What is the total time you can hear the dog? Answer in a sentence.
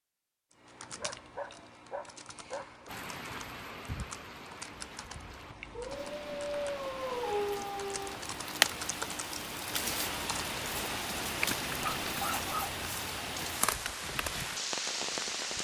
The dog can be heard for 5 seconds in total.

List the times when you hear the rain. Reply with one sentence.
You can hear the rain from 2.9 to 15.6 s.